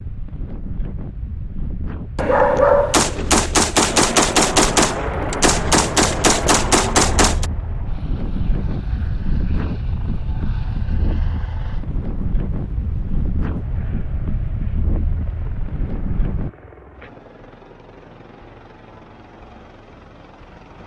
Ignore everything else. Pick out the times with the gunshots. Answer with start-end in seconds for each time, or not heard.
2.9-7.5.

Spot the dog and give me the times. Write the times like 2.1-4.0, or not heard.
2.1-3.4.